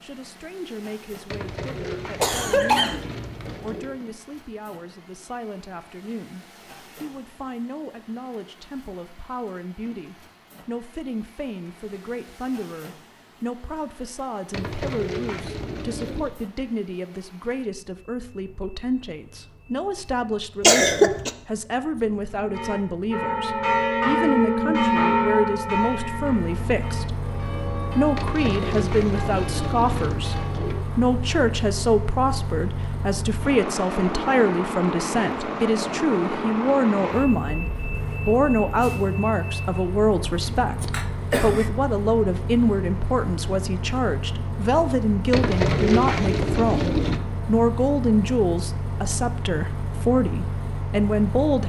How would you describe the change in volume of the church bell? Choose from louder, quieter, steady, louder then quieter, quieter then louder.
quieter.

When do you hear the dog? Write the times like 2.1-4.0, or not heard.
not heard.